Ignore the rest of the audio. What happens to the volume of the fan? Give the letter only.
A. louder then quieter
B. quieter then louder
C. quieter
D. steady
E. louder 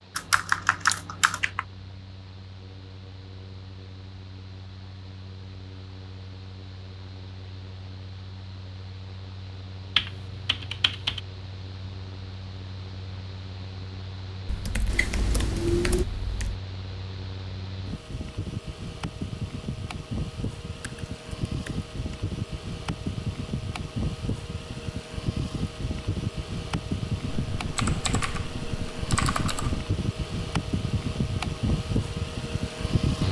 E.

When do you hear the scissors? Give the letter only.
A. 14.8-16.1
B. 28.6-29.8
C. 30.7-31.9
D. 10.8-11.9
A.